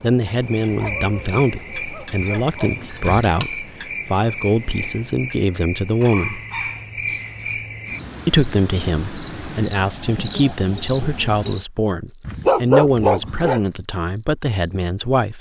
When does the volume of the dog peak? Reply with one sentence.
The loudest moment of the dog is at 13 seconds.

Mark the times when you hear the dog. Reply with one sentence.
You can hear the dog from 0.8 to 2.8 s, from 6.0 to 7.5 s and from 12.2 to 13.6 s.